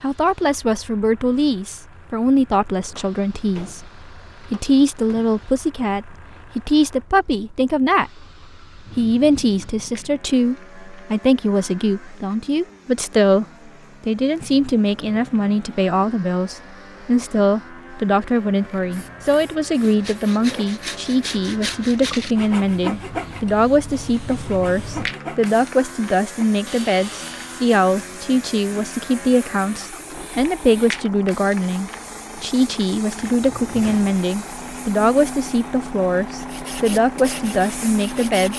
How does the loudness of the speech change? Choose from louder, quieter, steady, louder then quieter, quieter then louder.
steady.